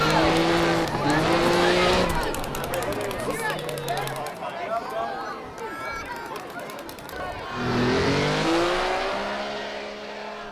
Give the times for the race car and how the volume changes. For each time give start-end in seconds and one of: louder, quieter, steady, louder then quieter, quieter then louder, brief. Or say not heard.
0.0-4.3 quieter
7.5-10.4 brief.